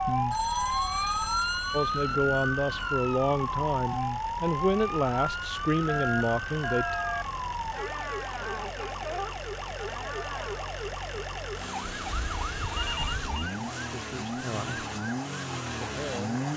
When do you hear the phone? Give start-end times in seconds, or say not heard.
0.3-2.1, 5.8-7.2, 11.8-13.5.